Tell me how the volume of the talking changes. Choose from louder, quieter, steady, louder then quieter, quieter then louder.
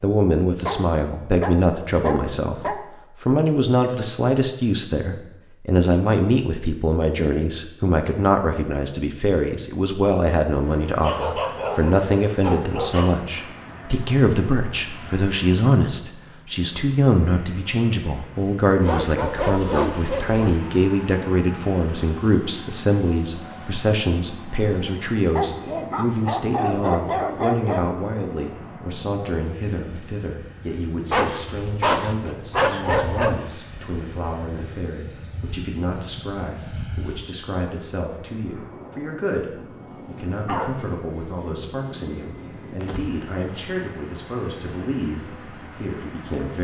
quieter.